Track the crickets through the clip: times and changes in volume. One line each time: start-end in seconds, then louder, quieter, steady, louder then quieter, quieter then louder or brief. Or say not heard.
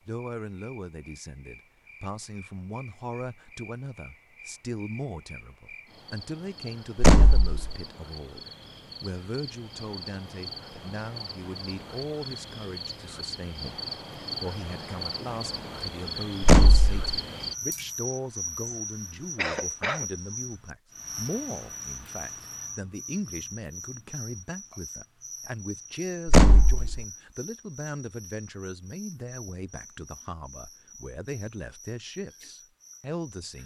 0.0-33.6 louder then quieter.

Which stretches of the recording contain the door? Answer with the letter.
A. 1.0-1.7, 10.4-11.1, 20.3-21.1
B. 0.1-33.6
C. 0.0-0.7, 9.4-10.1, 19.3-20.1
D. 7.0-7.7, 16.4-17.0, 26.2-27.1
D.